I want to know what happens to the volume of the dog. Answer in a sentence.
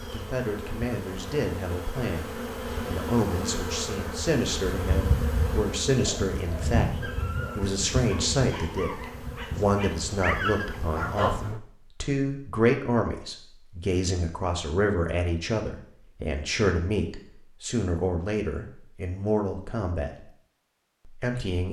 The volume of the dog goes up.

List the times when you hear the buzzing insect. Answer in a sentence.
The buzzing insect can be heard from 0.0 to 11.3 s.